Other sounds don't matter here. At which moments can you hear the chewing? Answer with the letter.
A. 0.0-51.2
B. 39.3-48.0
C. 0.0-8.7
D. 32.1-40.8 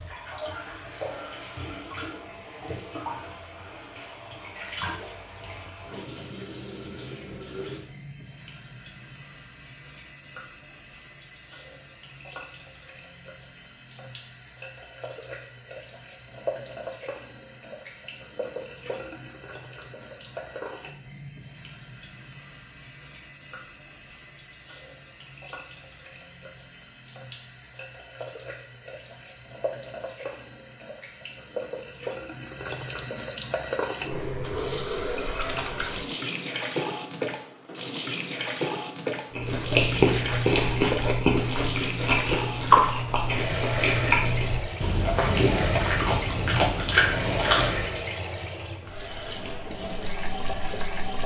B.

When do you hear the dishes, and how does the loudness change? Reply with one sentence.
You can't hear the dishes here.